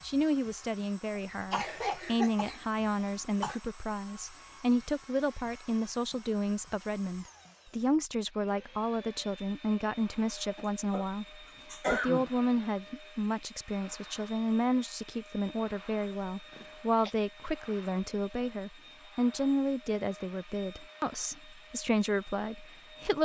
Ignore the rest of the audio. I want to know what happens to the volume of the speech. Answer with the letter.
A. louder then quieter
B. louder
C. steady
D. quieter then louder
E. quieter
C.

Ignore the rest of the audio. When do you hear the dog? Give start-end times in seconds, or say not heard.
not heard.